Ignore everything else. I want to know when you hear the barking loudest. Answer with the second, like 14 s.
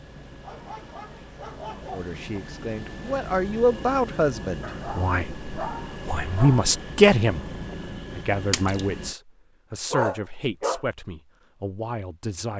10 s.